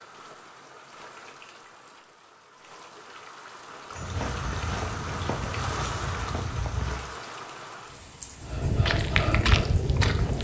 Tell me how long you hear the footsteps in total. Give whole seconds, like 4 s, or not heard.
5 s.